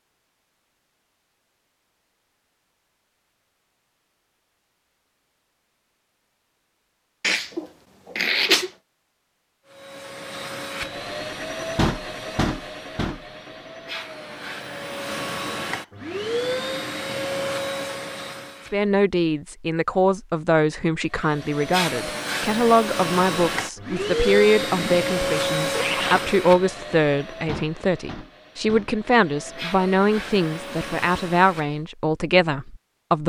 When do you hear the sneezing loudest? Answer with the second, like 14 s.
8 s.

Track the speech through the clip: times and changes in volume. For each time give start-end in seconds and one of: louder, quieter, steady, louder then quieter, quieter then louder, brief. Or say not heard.
18.7-33.2 steady.